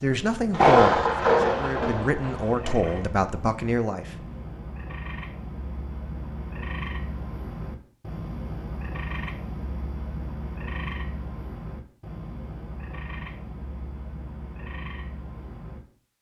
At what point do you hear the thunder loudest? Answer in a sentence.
The loudest moment of the thunder is at 1 second.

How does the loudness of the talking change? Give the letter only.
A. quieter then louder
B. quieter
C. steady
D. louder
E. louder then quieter
A.